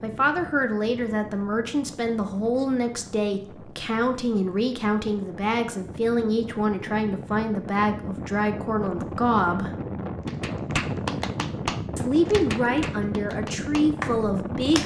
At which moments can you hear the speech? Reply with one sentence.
The speech can be heard from 0.0 to 9.7 s and from 11.9 to 14.8 s.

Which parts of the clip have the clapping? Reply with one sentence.
You can hear the clapping from 10.2 to 14.8 s.